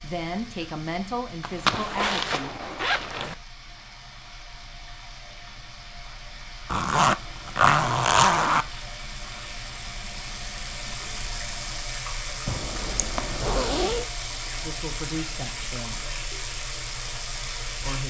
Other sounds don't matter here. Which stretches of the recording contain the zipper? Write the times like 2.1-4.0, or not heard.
1.4-3.4, 6.7-8.7, 12.4-14.1.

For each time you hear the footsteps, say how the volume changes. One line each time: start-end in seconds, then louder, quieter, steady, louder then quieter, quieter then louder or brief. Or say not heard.
not heard.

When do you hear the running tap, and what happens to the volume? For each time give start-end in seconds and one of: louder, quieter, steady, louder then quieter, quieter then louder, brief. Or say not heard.
0.0-18.0 louder.